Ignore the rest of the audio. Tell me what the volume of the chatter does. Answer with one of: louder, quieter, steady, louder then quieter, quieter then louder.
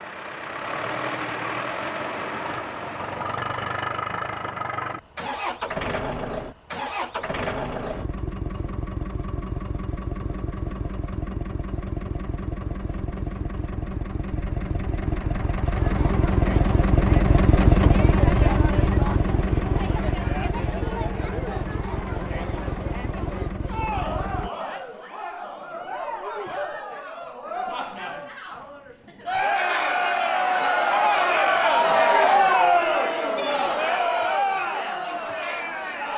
louder.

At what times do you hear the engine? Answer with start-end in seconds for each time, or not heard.
0.0-24.5.